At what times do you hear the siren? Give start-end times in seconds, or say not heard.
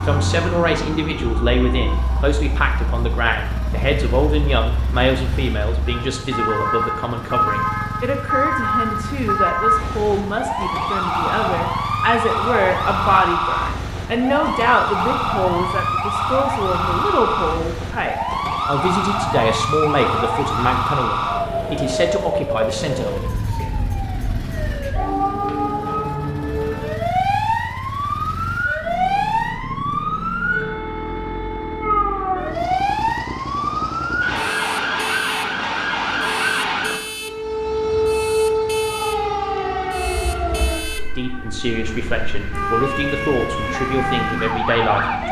0.0-45.2.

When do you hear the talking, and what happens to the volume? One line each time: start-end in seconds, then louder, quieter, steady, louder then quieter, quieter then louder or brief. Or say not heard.
0.0-23.3 steady
41.1-45.2 steady.